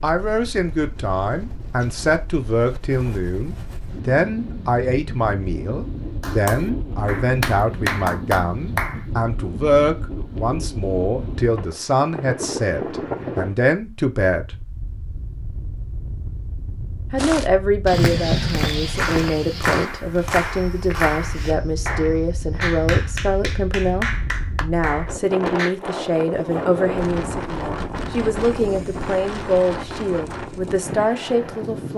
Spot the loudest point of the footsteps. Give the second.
18 s.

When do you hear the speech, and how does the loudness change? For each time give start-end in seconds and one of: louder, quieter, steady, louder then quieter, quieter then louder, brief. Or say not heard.
0.0-14.6 steady
17.1-31.9 steady.